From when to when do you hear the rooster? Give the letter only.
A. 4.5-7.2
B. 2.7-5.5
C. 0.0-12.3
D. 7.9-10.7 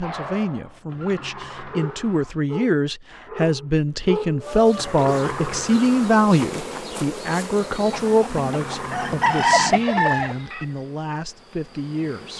D.